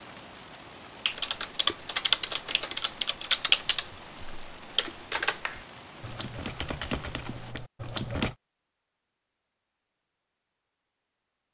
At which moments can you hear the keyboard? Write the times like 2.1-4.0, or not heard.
1.1-8.3.